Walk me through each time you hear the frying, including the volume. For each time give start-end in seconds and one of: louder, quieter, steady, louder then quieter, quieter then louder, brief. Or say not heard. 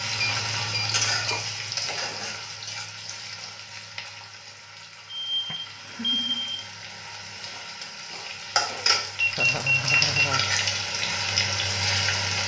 0.0-12.4 quieter then louder.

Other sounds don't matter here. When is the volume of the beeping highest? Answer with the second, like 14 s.
10 s.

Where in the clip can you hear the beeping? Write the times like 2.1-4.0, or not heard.
0.2-1.4, 5.1-6.7, 9.2-10.3.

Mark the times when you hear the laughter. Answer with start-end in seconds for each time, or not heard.
1.3-2.4, 5.8-6.5, 9.3-10.4.